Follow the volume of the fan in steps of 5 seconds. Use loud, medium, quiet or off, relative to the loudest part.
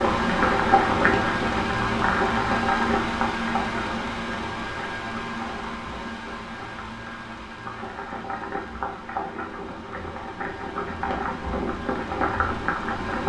loud, medium, medium.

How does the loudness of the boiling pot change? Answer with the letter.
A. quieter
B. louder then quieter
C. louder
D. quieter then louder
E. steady
D.